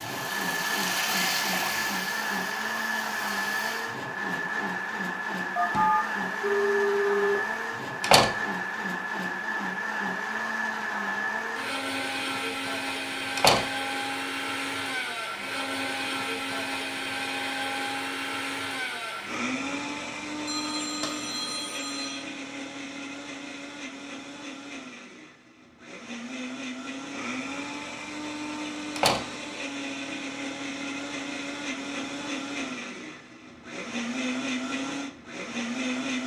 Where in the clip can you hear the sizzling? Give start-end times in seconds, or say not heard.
0.0-4.0.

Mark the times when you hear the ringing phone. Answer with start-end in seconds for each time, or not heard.
5.5-7.4, 20.4-22.2.